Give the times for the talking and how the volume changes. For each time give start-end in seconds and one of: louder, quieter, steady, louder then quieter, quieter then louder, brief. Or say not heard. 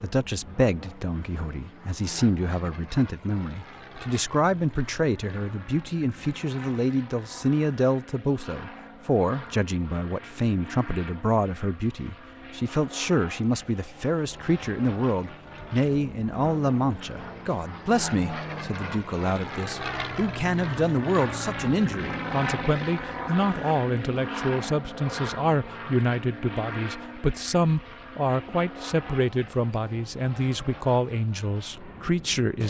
0.0-32.6 steady.